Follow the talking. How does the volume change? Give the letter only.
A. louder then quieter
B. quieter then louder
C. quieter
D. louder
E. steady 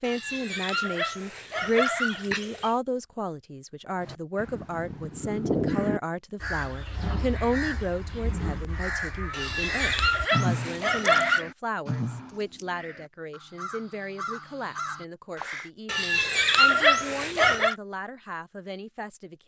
C.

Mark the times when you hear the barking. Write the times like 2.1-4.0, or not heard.
0.0-2.8, 9.3-11.4, 15.8-17.8.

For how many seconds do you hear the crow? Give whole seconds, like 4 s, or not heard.
12 s.